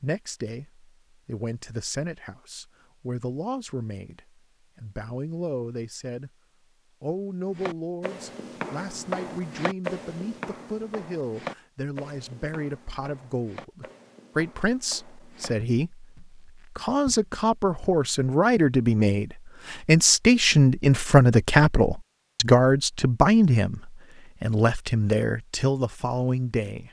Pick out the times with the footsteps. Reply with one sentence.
The footsteps can be heard from 7.5 to 17.9 s.